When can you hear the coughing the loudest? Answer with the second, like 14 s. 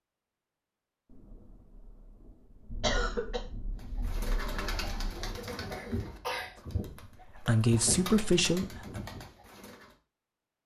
3 s.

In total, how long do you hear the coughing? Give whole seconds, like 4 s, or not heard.
2 s.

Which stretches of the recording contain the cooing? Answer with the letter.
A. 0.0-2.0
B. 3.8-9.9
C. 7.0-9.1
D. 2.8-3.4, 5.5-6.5
B.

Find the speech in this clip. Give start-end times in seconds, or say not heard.
7.0-9.1.